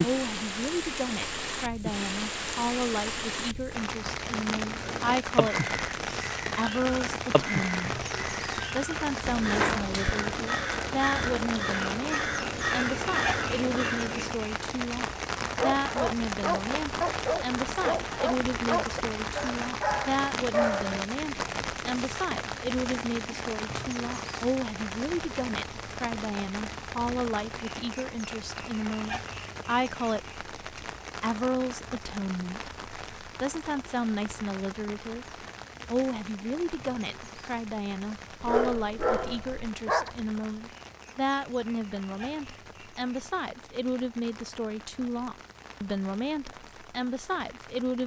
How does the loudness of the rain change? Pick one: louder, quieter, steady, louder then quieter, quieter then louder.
quieter.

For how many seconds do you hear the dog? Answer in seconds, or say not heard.
7 s.